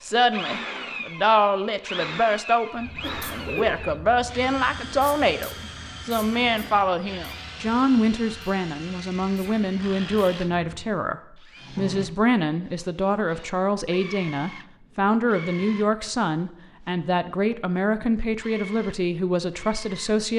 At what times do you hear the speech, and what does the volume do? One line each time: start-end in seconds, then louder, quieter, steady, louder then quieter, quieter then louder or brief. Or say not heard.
0.0-20.3 steady.